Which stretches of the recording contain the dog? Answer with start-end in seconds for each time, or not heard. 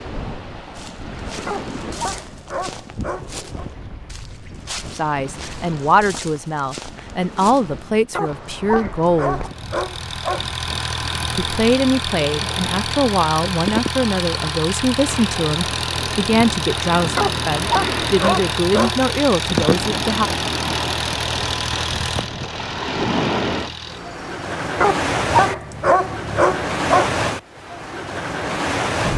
1.4-3.5, 8.1-10.6, 17.1-19.1, 24.8-27.2.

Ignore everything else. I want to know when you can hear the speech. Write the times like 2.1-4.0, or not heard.
4.9-9.4, 11.3-20.3.